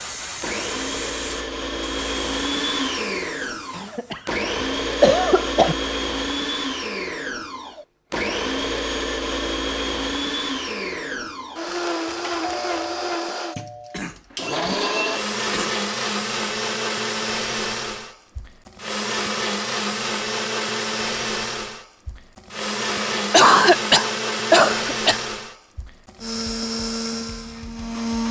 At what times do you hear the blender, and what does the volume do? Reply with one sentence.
You can hear the blender from 0.4 to 28.2 s, at a steady volume.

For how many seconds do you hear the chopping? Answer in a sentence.
The chopping can't be heard in this clip.